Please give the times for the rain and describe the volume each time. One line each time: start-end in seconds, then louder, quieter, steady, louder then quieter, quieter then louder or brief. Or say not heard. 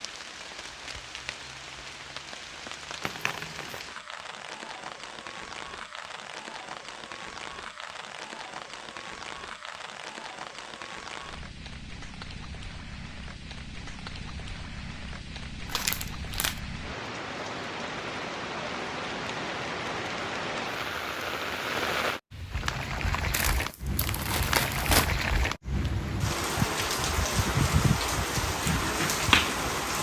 0.0-29.9 louder.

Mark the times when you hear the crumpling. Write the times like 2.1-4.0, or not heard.
3.0-3.8, 15.7-16.6, 23.3-25.1.